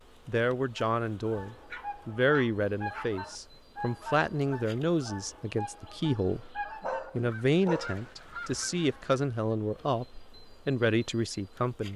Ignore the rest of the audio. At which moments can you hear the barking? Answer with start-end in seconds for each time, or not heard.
1.7-3.6, 6.8-8.1.